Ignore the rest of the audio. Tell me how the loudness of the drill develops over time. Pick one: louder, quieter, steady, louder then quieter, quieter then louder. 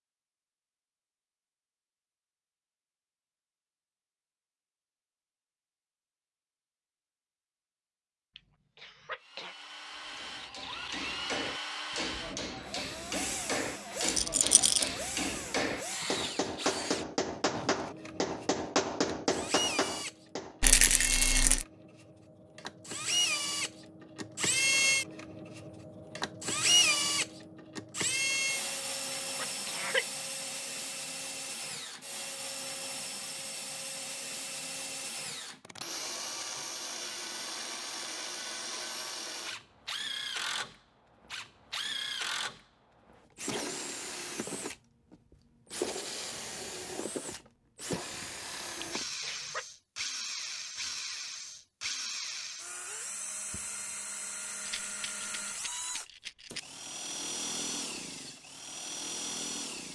louder then quieter.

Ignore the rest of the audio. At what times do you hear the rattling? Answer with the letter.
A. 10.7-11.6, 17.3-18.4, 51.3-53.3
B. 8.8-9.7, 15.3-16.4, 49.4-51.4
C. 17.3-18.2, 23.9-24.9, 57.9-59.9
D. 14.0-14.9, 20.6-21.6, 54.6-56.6
D.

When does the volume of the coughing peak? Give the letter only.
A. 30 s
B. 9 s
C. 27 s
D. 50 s
A.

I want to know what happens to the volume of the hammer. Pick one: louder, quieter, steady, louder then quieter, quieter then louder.
louder.